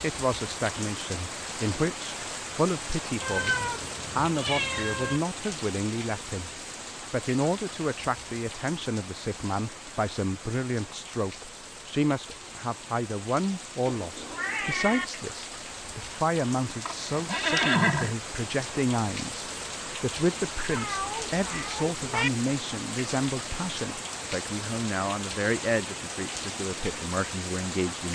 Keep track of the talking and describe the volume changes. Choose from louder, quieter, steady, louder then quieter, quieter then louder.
steady.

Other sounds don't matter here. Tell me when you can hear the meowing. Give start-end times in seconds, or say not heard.
3.2-5.2, 13.8-15.1, 20.7-22.3.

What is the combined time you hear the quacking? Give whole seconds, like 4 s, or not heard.
not heard.